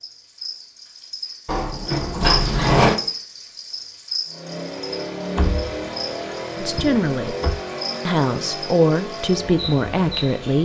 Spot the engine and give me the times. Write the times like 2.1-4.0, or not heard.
4.2-10.5.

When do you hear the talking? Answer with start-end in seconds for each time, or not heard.
6.6-7.3, 8.1-10.5.